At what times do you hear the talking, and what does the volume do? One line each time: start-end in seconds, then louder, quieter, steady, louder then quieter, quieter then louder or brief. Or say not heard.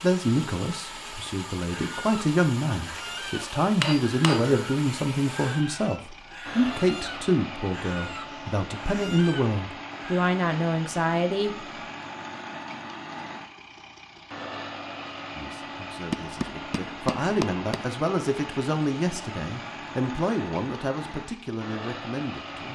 0.0-11.6 steady
15.3-22.7 louder then quieter.